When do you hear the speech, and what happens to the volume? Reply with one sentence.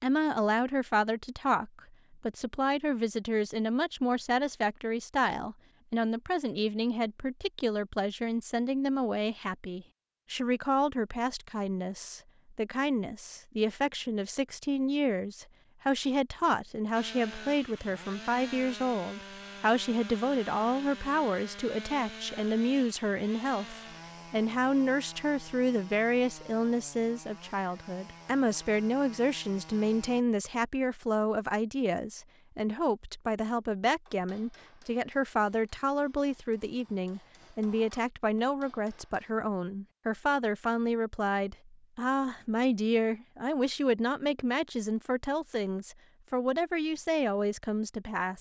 The speech can be heard from 0.0 to 48.3 s, at a steady volume.